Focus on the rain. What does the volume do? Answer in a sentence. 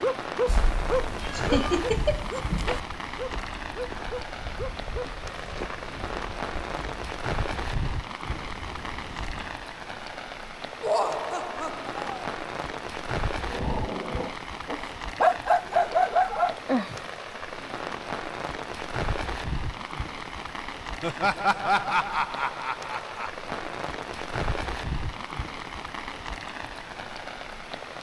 The volume of the rain stays about the same.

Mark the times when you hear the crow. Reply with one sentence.
The crow can't be heard in this clip.